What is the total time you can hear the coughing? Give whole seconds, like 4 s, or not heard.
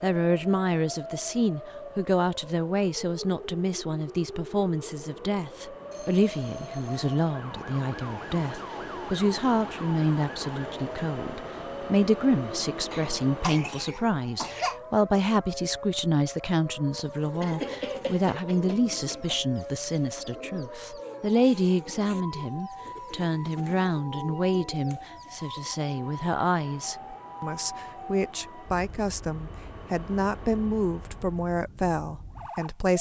4 s.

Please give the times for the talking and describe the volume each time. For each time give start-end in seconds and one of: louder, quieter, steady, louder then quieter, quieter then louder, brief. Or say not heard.
0.0-32.9 steady.